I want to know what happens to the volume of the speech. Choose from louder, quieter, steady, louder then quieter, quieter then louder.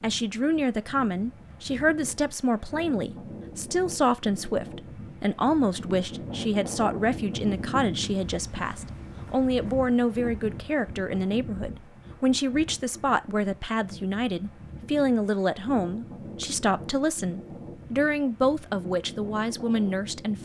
steady.